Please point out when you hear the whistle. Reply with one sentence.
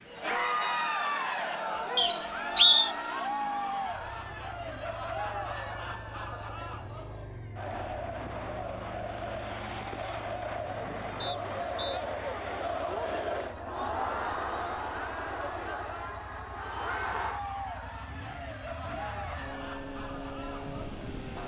The whistle can be heard from 1.9 to 2.9 s and from 11.2 to 12.0 s.